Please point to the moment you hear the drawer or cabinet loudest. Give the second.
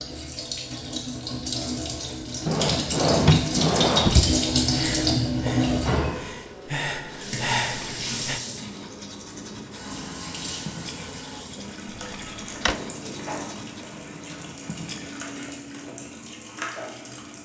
3 s.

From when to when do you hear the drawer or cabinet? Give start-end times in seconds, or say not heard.
2.5-4.3, 11.9-12.8.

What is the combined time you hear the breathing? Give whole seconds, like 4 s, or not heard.
4 s.